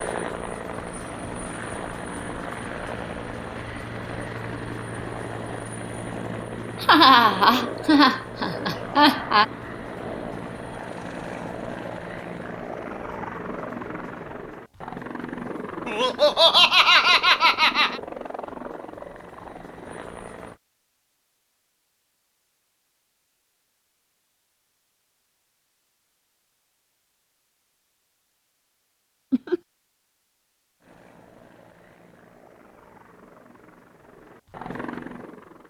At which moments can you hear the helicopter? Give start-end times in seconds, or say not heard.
0.0-20.6, 30.8-35.6.